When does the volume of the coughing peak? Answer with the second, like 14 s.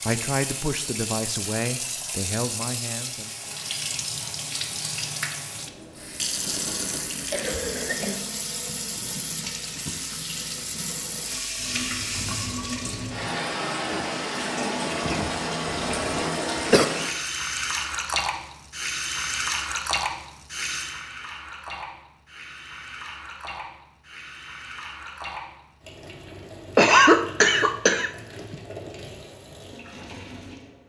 27 s.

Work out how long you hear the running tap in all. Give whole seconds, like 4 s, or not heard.
31 s.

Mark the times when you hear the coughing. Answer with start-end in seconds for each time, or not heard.
7.3-8.2, 15.1-16.9, 26.8-28.6.